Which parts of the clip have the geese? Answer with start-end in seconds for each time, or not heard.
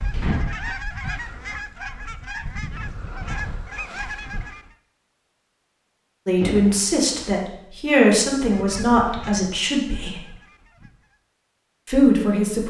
0.0-4.7, 8.4-11.2.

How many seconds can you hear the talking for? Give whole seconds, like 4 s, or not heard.
5 s.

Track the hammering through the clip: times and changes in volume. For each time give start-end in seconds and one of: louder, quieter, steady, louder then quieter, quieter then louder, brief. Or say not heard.
not heard.